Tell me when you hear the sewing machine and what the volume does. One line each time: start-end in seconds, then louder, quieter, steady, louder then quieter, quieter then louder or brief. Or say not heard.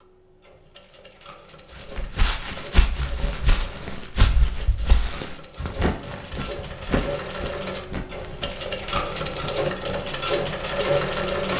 0.0-11.5 louder.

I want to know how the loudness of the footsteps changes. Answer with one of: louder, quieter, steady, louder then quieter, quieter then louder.
quieter.